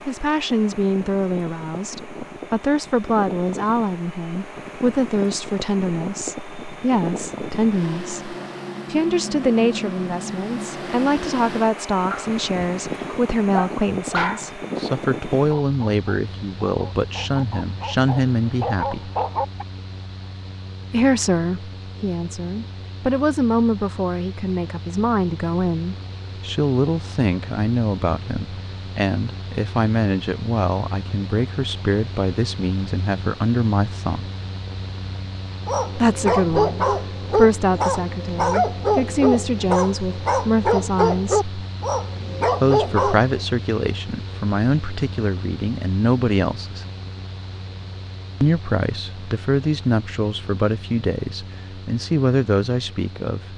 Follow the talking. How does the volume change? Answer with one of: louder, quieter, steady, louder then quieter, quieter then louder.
steady.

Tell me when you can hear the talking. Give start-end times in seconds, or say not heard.
0.1-19.1, 20.9-34.3, 36.0-41.5, 42.6-46.9, 48.4-53.5.